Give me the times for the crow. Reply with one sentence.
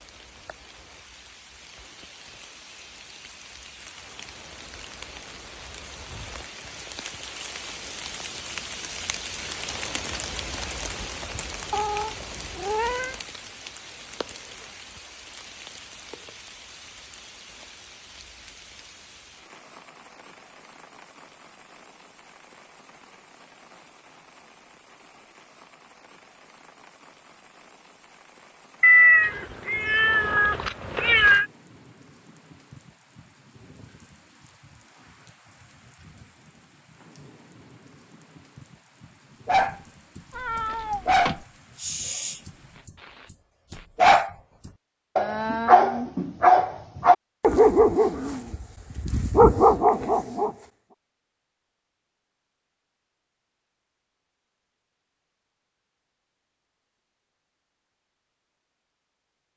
The crow can't be heard in this clip.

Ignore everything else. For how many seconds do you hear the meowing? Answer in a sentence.
You can hear the meowing for 5 seconds altogether.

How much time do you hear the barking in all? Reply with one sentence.
You can hear the barking for 10 seconds altogether.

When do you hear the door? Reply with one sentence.
The door can't be heard in this clip.